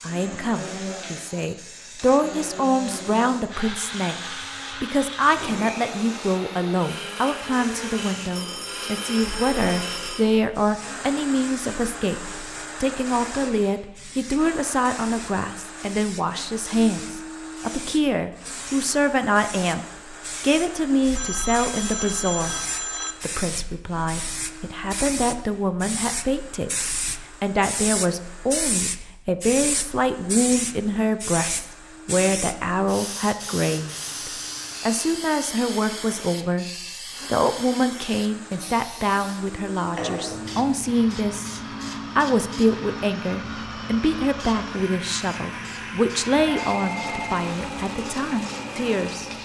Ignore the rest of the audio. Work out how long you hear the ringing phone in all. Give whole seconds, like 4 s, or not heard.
5 s.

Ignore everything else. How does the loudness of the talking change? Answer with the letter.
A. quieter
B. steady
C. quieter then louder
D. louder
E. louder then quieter
B.